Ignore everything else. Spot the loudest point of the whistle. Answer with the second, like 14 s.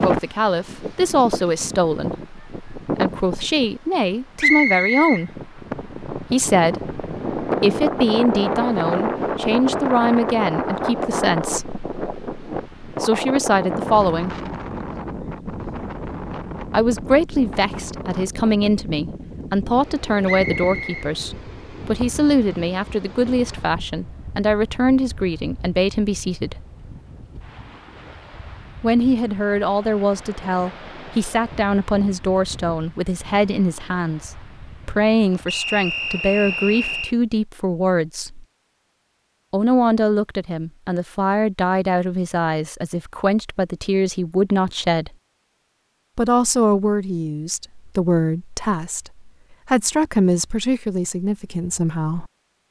5 s.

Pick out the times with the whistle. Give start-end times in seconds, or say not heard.
4.4-5.2, 20.2-21.1, 35.5-37.1.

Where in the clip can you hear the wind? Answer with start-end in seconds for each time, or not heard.
0.0-37.2.